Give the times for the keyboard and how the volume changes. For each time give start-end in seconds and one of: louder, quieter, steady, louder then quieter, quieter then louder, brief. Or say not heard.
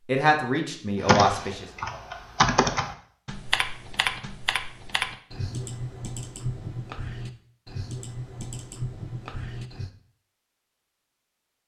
1.0-9.9 quieter.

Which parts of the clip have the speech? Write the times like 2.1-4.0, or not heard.
0.1-1.6.